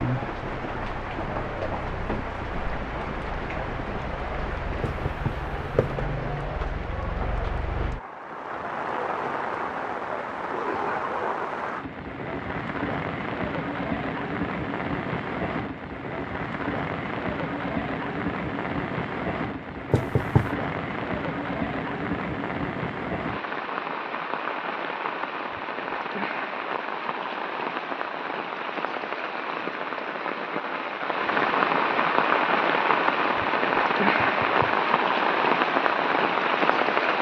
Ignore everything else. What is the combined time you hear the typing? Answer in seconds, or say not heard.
not heard.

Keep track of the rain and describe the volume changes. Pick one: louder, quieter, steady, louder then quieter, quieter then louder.
louder.